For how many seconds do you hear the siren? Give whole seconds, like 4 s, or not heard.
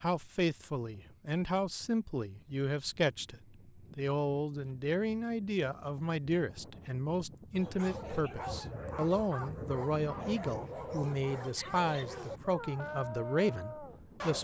not heard.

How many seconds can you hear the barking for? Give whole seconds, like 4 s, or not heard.
7 s.